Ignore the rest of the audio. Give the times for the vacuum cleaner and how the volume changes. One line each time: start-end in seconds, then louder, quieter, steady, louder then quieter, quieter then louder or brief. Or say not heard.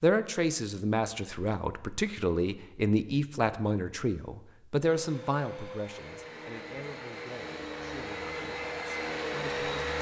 4.8-9.9 louder.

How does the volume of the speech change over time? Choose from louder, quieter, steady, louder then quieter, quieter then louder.
quieter.